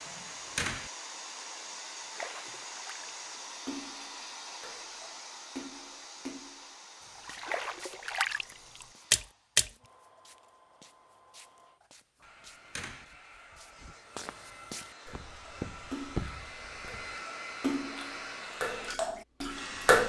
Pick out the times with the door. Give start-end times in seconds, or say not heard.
0.0-0.9, 12.2-13.1.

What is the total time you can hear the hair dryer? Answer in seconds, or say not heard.
20 s.